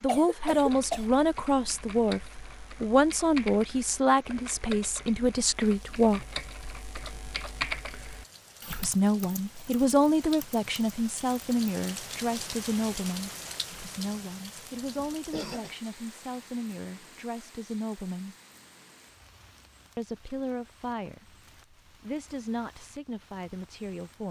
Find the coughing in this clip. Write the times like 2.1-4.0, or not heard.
0.1-1.1, 14.9-15.7.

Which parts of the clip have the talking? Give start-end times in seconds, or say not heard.
0.0-6.2, 8.7-18.4, 19.9-24.2.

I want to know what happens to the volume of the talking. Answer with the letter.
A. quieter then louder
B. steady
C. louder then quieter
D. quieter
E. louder
D.